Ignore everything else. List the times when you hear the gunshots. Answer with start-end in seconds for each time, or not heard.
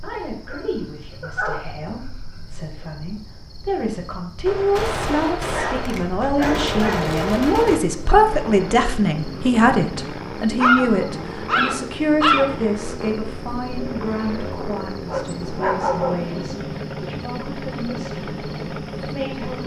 4.5-7.8.